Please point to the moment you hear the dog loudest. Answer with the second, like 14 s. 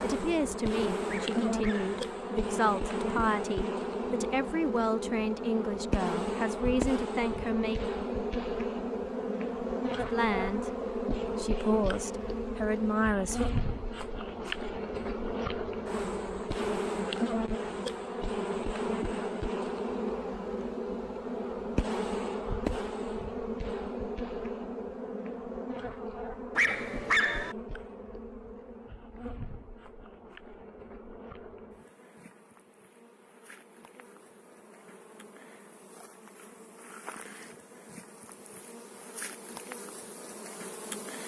27 s.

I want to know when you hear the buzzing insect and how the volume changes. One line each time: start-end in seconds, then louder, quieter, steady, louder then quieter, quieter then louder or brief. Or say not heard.
0.0-41.2 quieter.